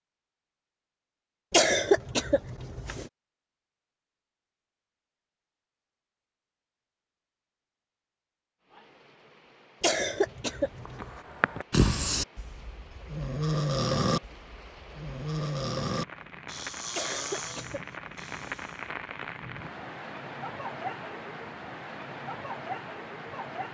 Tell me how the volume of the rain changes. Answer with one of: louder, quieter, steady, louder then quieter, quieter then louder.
louder.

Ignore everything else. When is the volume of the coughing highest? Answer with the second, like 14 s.
2 s.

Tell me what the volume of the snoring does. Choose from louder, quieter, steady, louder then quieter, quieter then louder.
quieter.